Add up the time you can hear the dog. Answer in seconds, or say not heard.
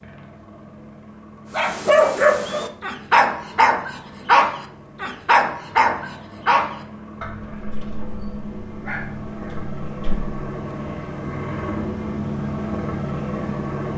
9 s.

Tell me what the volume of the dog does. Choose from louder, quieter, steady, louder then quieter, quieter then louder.
quieter.